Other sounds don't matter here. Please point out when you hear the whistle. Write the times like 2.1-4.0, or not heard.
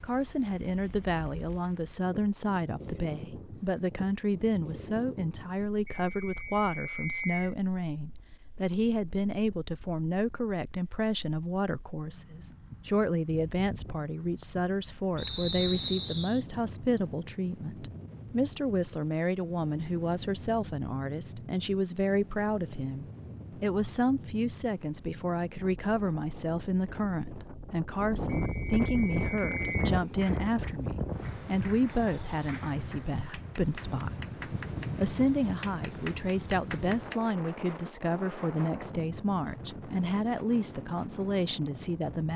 5.8-7.5, 15.2-16.4, 28.2-29.8.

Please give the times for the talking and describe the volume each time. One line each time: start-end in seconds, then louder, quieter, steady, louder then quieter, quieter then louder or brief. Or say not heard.
0.0-42.3 steady.